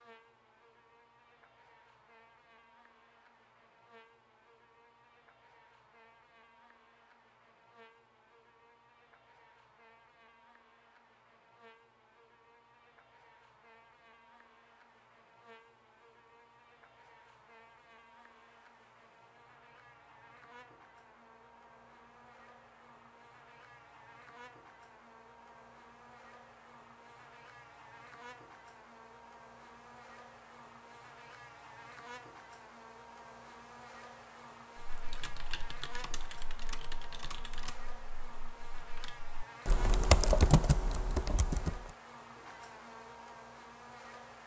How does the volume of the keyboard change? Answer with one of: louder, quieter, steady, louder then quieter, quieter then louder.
louder then quieter.